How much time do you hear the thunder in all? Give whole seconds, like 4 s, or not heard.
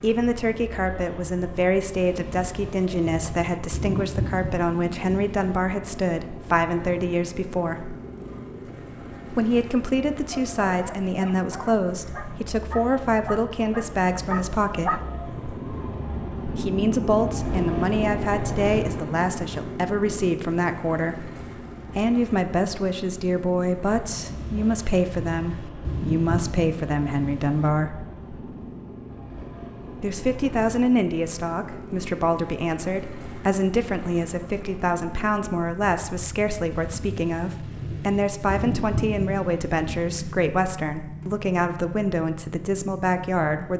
11 s.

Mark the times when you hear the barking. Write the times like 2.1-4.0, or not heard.
10.3-15.0.